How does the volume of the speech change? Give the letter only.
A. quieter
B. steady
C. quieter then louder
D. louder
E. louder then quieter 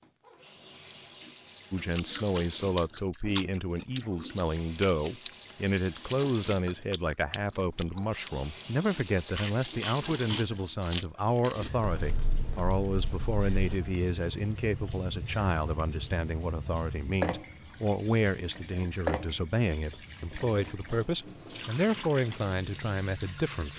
B.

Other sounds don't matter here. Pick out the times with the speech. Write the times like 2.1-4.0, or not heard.
1.7-23.7.